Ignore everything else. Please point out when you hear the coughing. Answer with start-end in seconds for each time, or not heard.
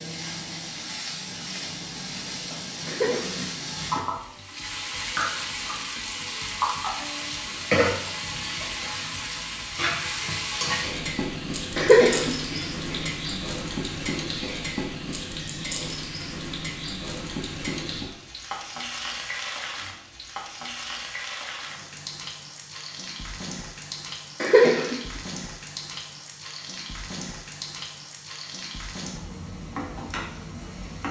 2.9-3.6, 11.8-12.9, 24.4-24.9.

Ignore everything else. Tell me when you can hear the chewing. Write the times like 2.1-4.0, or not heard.
not heard.